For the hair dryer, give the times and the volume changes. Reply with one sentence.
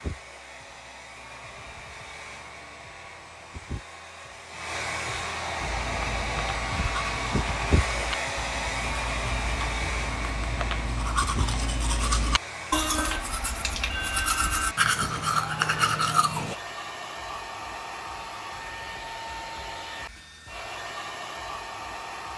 The hair dryer can be heard from 0.0 to 22.3 s, getting louder then quieter.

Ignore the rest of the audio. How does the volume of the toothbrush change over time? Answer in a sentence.
The volume of the toothbrush goes up.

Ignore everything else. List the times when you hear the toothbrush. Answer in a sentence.
The toothbrush can be heard from 5.6 to 16.6 s.